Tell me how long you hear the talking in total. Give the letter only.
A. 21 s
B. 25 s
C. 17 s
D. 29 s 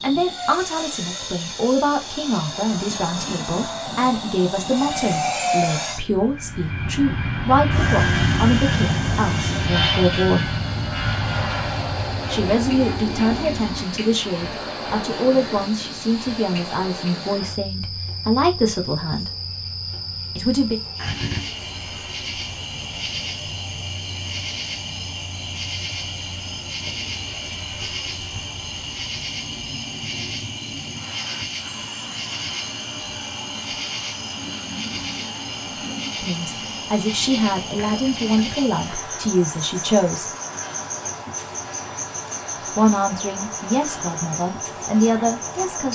B.